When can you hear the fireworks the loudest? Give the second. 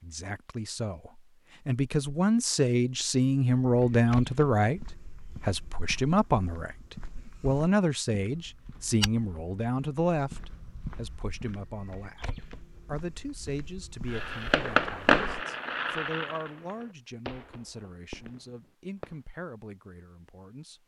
15 s.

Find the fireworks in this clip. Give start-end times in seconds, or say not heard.
14.1-19.2.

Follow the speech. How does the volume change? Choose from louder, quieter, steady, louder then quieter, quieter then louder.
quieter.